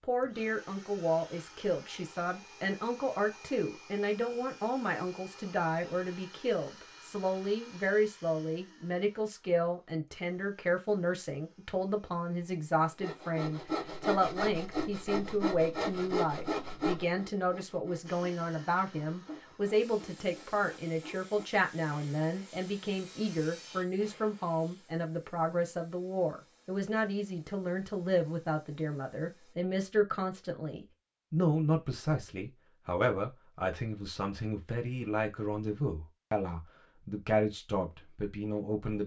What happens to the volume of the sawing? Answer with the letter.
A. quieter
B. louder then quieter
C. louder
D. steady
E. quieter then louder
A.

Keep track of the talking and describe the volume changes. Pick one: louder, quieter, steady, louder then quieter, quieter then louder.
steady.